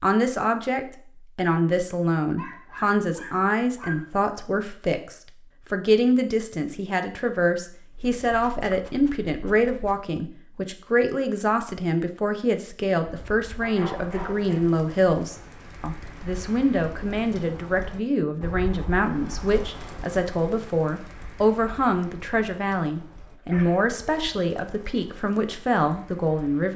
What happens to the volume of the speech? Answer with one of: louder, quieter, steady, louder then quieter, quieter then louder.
steady.